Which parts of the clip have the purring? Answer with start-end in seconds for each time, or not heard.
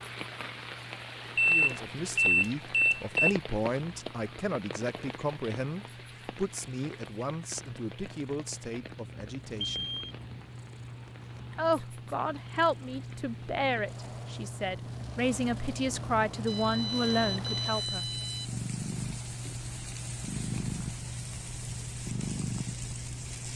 0.0-23.5.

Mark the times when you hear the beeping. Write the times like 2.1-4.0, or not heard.
1.4-3.2, 9.6-10.2, 16.4-18.5.